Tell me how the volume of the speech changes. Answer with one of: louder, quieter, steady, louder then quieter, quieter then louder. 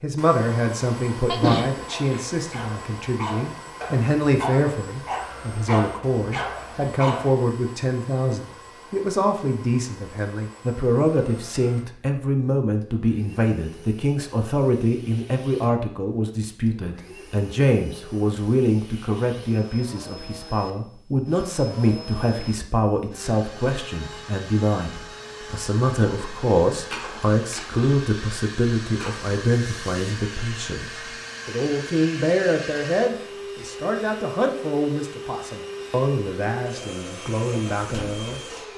steady.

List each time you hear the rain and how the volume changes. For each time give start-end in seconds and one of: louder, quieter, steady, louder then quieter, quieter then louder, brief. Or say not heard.
not heard.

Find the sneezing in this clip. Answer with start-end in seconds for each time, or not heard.
1.2-2.2.